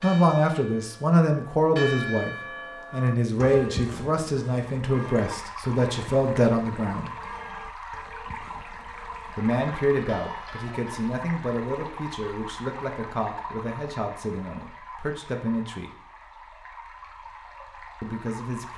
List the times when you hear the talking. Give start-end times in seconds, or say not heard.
0.0-7.1, 9.3-15.9, 18.0-18.7.